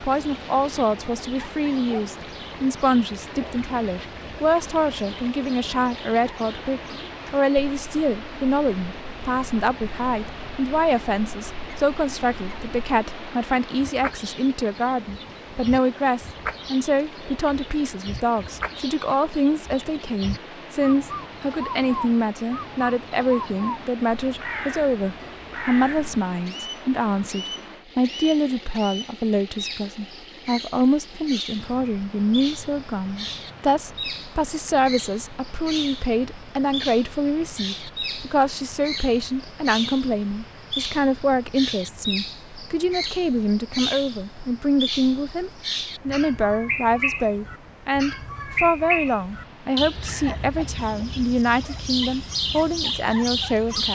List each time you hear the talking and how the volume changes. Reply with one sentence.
You can hear the talking from 0.0 to 53.8 s, at a steady volume.